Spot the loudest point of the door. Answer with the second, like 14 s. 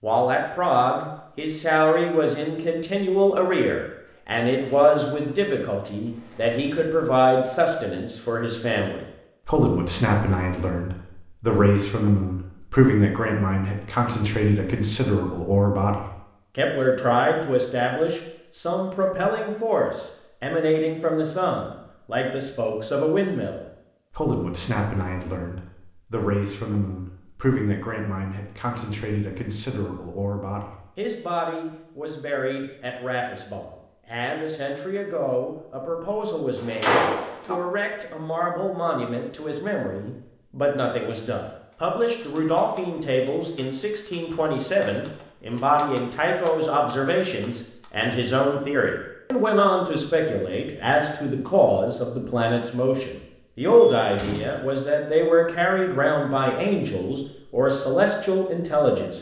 37 s.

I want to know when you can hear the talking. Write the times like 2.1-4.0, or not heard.
0.0-59.1.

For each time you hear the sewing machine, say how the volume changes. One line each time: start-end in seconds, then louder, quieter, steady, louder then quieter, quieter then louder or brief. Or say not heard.
not heard.